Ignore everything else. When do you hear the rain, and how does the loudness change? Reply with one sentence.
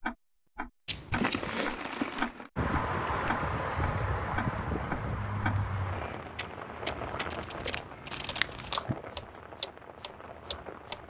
You can hear the rain from 2.5 to 11.0 s, getting quieter.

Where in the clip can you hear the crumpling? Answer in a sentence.
The crumpling can be heard from 1.1 to 2.5 s and from 8.1 to 8.8 s.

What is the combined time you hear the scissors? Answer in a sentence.
You can hear the scissors for 2 seconds altogether.